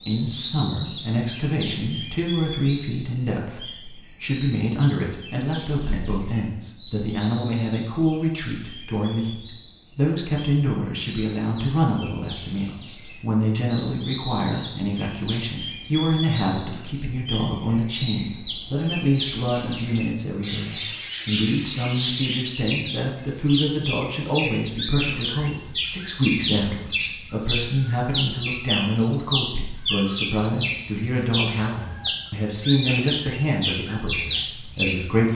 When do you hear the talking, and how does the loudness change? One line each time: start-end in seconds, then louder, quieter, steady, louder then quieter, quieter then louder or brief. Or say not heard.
0.0-35.2 steady.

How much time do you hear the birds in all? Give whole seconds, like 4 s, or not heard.
35 s.